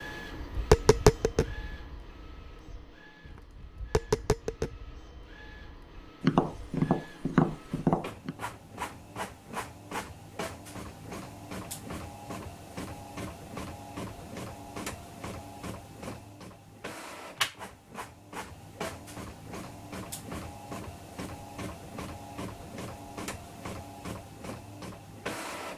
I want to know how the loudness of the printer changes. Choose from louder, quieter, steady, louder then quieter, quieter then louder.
louder.